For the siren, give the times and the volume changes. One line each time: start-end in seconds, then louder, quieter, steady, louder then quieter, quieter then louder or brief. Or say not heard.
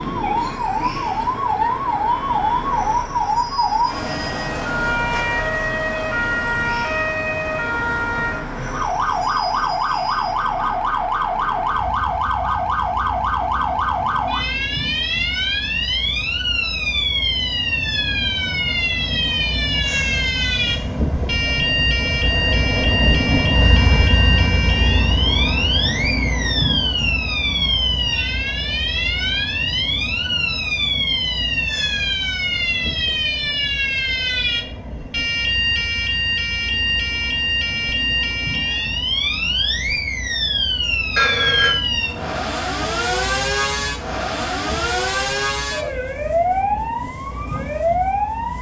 0.0-48.5 steady.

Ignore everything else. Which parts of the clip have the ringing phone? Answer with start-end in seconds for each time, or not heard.
41.1-41.8.